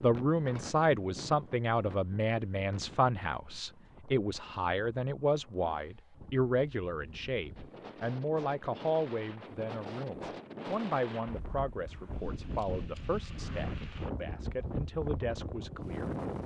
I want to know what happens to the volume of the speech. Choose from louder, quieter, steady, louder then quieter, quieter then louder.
quieter.